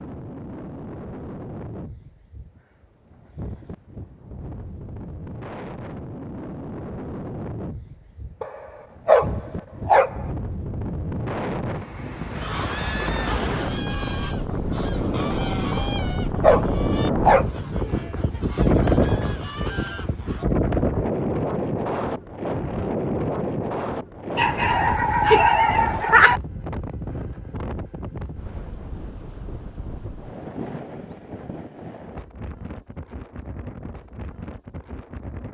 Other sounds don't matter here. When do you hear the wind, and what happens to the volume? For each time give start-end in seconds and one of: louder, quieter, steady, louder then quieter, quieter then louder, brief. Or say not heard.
0.0-35.4 louder then quieter.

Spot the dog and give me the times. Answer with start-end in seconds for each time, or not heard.
8.4-10.2, 15.8-17.4, 24.4-26.4.